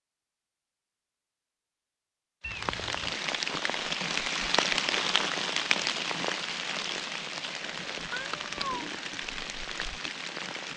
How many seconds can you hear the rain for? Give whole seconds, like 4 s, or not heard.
8 s.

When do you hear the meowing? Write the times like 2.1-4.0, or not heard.
2.4-3.1, 8.1-8.8.